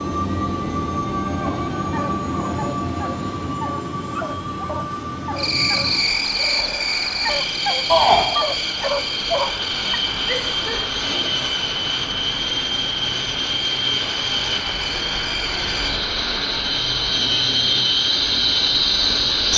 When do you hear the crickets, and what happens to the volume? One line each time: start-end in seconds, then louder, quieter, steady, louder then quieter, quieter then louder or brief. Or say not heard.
5.3-19.5 quieter then louder.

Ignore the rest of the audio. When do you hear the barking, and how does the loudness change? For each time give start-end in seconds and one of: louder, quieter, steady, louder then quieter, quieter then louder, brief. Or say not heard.
1.4-10.0 louder.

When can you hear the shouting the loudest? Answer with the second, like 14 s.
8 s.